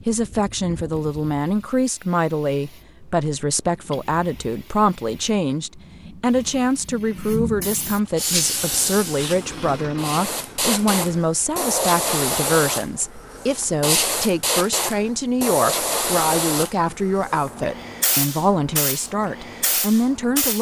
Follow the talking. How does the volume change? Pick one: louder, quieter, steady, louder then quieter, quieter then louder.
steady.